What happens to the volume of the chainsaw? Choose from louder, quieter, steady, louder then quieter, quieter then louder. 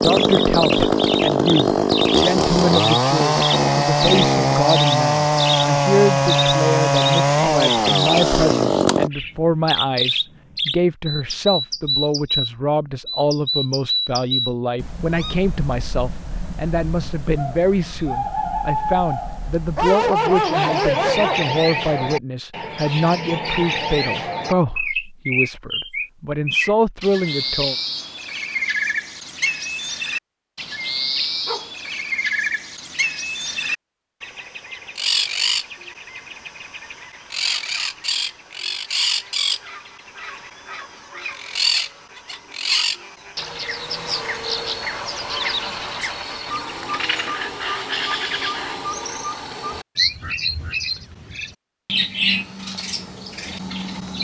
steady.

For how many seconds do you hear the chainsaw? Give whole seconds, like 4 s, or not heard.
9 s.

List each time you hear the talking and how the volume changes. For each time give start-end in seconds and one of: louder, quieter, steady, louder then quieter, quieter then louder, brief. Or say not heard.
0.0-27.8 steady.